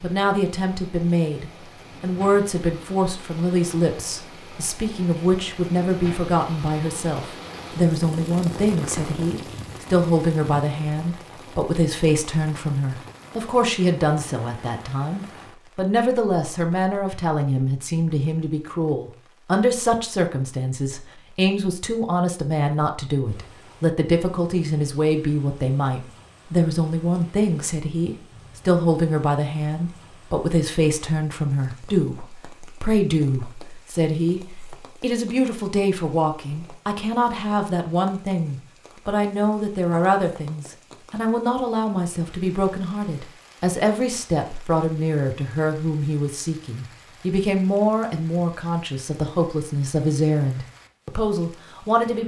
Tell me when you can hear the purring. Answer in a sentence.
The purring can't be heard in this clip.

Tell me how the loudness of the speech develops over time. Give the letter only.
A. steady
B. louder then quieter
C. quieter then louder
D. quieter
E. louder
A.